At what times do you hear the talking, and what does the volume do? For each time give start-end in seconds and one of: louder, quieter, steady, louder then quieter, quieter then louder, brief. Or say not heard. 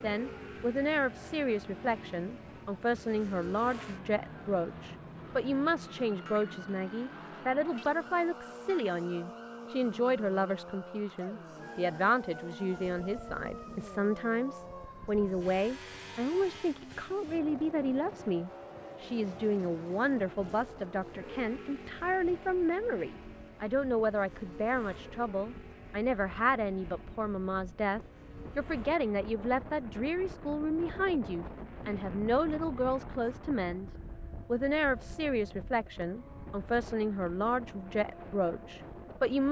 0.0-39.4 steady.